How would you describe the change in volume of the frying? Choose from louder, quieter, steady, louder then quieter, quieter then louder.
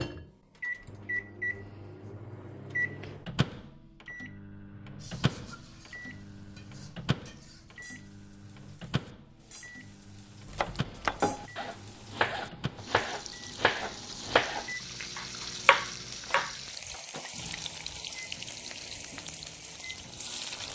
louder.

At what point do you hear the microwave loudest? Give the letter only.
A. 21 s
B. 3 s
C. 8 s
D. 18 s
B.